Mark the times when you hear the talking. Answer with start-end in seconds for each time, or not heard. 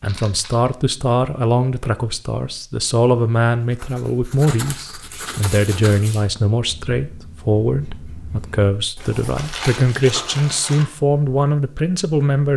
0.0-12.5.